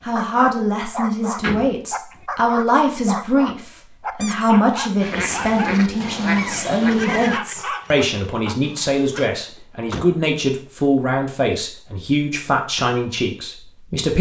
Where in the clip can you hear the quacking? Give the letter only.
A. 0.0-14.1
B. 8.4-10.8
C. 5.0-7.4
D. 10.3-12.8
C.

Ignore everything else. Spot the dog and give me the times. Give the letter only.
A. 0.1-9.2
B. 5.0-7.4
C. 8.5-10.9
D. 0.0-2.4
A.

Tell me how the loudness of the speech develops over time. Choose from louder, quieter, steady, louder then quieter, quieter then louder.
steady.